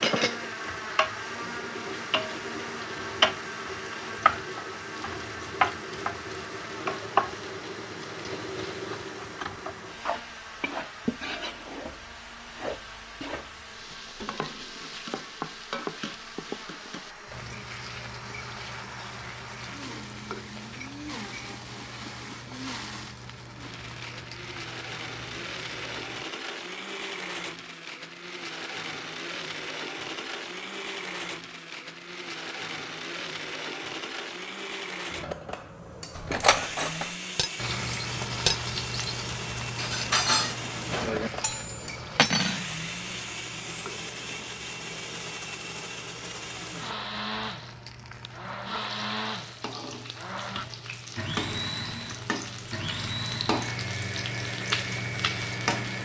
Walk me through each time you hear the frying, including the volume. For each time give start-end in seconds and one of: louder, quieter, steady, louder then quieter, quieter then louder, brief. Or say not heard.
0.0-26.2 quieter
37.5-56.0 quieter then louder.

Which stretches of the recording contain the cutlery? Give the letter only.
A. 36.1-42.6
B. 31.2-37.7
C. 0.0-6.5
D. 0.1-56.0
A.